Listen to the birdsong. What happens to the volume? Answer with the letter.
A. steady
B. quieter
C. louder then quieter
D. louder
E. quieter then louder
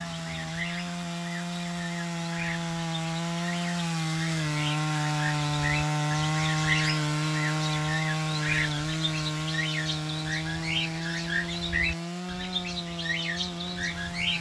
D.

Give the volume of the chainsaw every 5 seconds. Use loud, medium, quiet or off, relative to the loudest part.
loud, loud, medium.